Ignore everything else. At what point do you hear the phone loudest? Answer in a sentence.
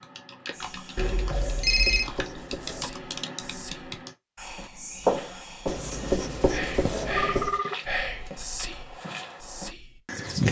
The volume of the phone peaks at 2 seconds.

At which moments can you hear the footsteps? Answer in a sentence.
The footsteps can be heard from 4.5 to 10.4 s.